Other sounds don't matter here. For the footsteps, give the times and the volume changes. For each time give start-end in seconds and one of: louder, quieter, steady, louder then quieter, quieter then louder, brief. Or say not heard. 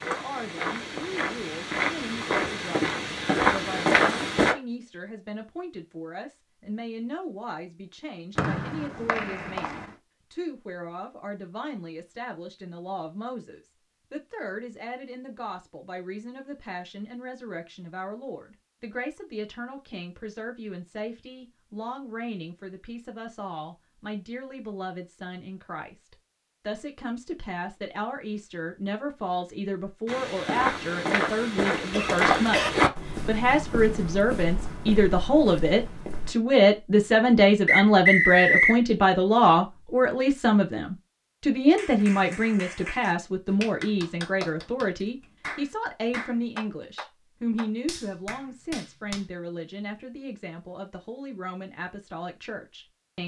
0.0-4.5 louder
30.1-36.4 quieter.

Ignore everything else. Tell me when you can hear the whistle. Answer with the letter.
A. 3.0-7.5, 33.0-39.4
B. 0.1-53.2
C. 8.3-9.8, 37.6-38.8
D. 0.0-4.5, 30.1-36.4
C.